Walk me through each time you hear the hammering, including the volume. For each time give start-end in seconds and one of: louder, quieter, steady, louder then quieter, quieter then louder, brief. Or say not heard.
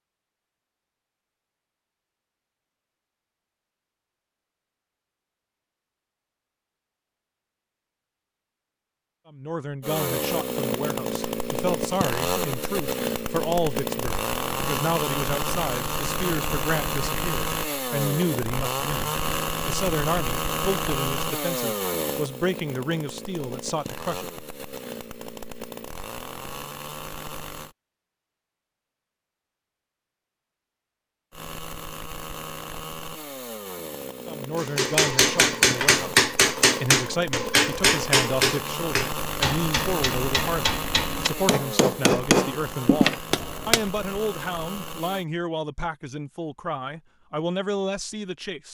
34.5-43.9 quieter then louder.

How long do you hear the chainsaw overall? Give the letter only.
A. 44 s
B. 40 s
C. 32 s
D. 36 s
C.